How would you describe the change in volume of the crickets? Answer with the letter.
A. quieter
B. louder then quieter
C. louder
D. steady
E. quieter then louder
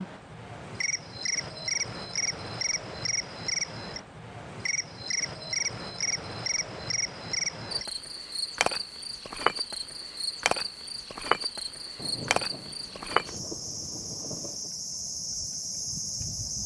D.